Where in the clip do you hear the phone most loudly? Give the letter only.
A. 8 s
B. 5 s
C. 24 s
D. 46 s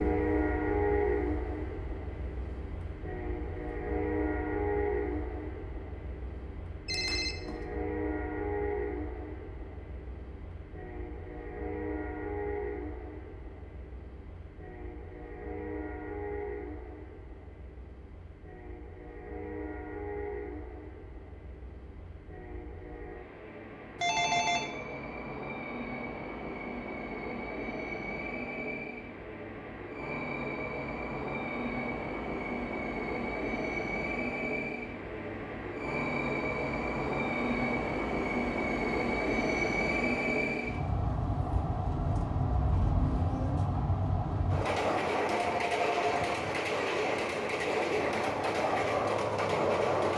C.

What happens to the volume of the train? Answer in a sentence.
The loudness of the train goes down, then up.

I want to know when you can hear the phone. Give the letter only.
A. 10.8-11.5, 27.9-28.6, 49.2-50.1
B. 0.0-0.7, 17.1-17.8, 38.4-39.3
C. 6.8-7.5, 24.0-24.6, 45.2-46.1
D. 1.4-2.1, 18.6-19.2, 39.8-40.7
C.